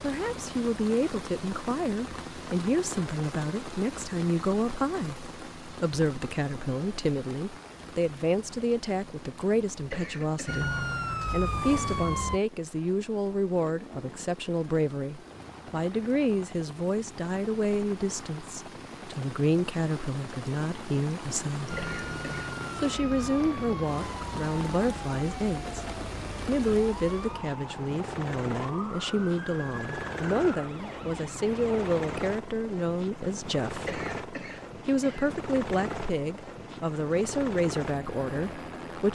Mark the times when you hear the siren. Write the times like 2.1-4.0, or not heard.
10.4-12.4, 21.6-32.2.